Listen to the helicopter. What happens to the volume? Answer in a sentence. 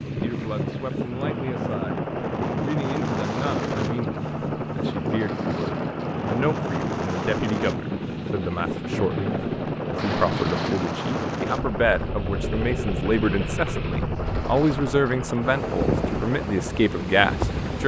The loudness of the helicopter stays about the same.